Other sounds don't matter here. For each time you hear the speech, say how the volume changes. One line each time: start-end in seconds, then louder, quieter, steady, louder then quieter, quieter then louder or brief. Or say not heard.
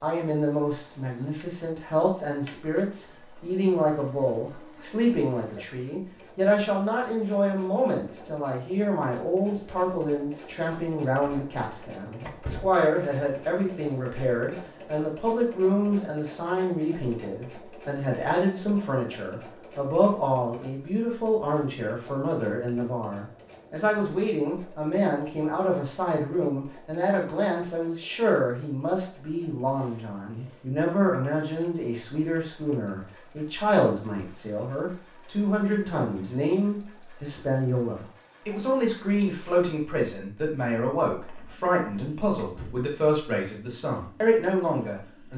0.0-45.3 steady.